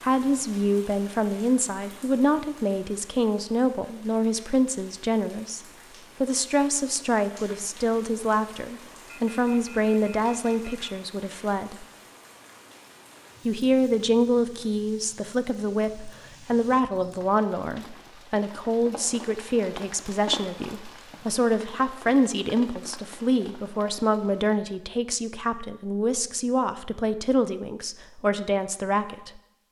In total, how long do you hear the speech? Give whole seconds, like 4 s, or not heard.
27 s.